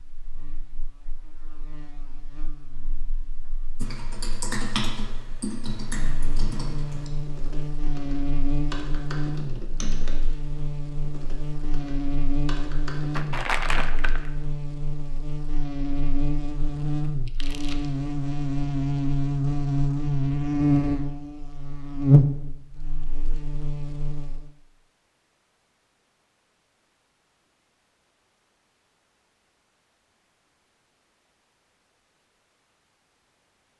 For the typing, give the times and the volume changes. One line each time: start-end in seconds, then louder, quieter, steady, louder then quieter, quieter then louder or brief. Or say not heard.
3.8-13.3 quieter.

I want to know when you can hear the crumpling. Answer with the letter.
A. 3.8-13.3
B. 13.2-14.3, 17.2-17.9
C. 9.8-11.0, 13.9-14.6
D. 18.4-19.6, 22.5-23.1
B.